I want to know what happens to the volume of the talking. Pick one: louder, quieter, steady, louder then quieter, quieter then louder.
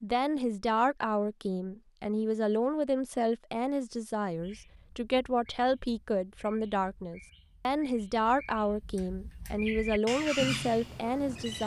steady.